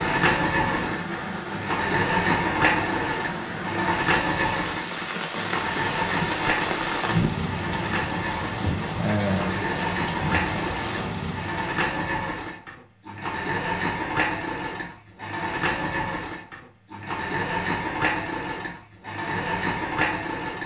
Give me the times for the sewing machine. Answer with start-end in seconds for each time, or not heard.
0.0-20.6.